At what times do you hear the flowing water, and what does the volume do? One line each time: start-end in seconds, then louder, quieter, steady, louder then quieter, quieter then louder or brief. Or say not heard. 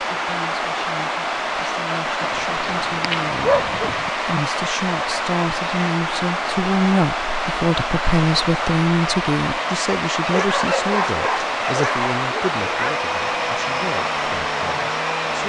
0.0-15.4 steady.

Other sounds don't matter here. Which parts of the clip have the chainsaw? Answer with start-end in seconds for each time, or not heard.
12.5-15.4.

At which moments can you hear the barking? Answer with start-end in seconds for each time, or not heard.
2.2-4.1, 10.2-12.9.